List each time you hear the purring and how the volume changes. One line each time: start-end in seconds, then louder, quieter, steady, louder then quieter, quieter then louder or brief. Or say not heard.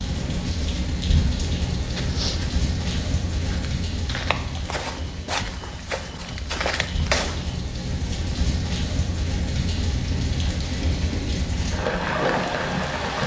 not heard.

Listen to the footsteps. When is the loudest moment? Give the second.
7 s.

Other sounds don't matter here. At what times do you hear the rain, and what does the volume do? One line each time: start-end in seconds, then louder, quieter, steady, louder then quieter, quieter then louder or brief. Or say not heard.
0.0-13.2 quieter then louder.